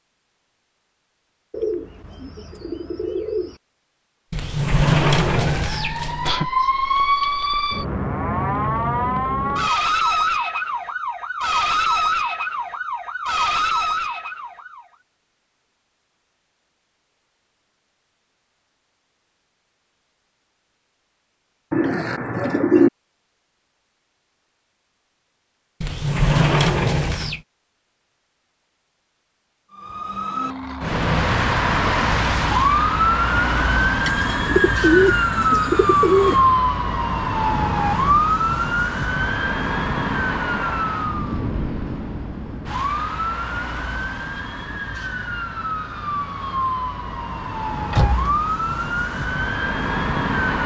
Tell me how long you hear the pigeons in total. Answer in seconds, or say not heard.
6 s.